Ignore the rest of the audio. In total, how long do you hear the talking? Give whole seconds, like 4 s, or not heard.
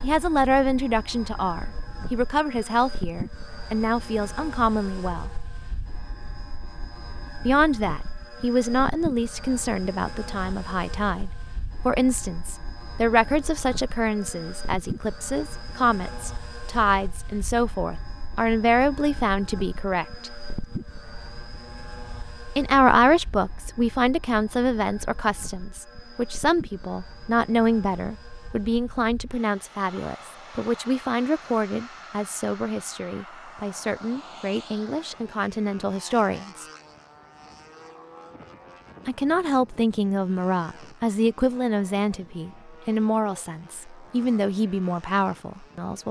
39 s.